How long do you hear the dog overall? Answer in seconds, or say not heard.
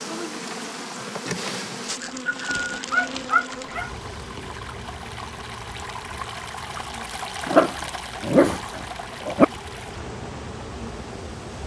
4 s.